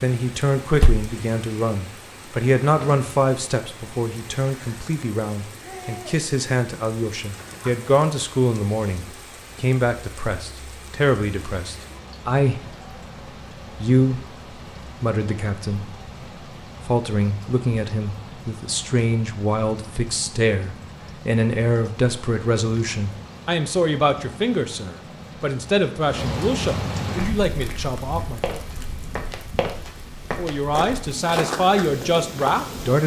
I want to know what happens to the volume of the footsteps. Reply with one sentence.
The volume of the footsteps goes up.